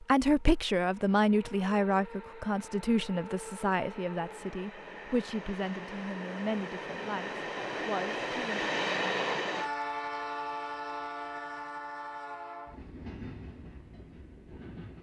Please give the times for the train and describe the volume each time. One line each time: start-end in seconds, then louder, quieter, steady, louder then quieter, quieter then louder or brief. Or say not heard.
0.0-14.9 louder then quieter.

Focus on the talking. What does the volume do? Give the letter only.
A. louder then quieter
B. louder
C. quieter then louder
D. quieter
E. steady
D.